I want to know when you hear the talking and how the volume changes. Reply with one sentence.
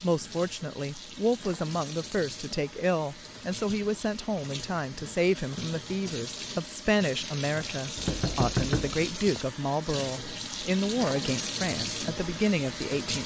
You can hear the talking from 0.0 to 13.2 s, at a steady volume.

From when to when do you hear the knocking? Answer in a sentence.
You can hear the knocking from 8.0 to 9.1 s.